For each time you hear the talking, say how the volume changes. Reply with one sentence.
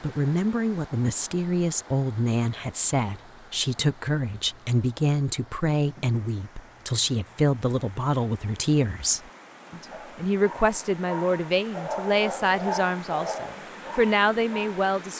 The talking can be heard from 0.0 to 15.1 s, at a steady volume.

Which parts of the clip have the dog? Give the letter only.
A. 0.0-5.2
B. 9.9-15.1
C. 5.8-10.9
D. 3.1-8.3
B.